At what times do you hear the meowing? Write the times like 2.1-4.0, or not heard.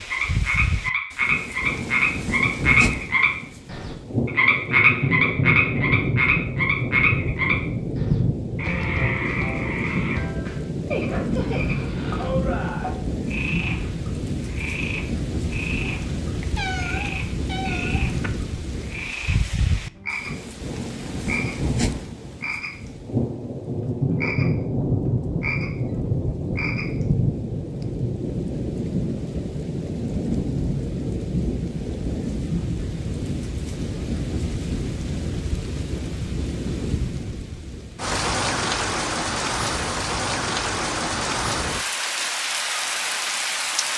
16.4-18.3.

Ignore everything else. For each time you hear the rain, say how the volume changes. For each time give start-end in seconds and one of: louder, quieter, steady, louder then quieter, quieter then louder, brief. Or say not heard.
0.0-43.9 steady.